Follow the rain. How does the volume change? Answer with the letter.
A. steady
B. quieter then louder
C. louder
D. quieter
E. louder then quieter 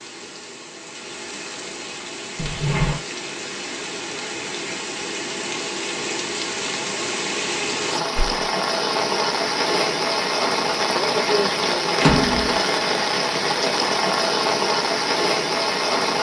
C.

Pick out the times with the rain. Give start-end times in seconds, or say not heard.
0.0-16.1.